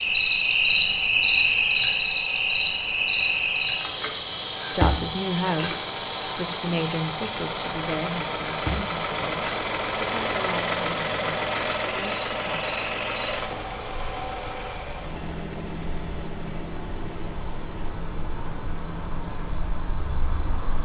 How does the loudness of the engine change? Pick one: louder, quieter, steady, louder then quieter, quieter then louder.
louder then quieter.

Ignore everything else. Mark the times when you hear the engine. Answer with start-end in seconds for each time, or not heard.
0.0-20.7.